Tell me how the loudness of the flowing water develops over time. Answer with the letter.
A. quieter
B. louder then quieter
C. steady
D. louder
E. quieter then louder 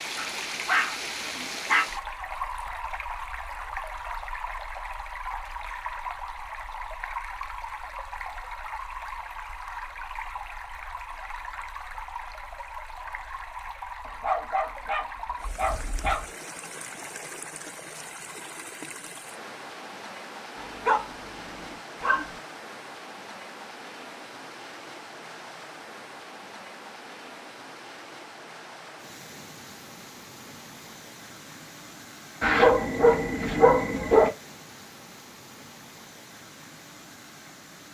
A.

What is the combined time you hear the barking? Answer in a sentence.
The barking can be heard for 8 seconds in total.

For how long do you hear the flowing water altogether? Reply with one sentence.
You can hear the flowing water for 38 seconds altogether.